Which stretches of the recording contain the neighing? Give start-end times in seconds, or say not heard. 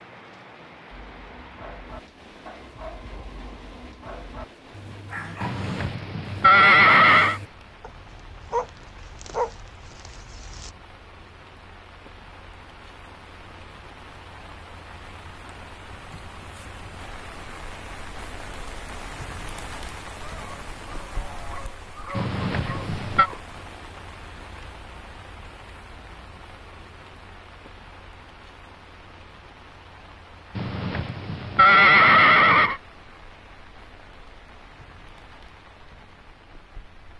5.4-7.4, 22.1-23.3, 30.6-32.8.